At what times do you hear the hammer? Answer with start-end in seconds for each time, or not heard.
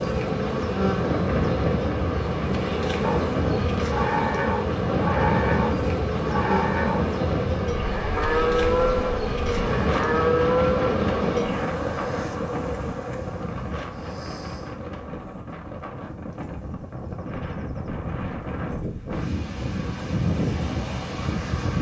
not heard.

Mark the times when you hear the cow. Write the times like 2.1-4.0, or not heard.
3.0-11.7.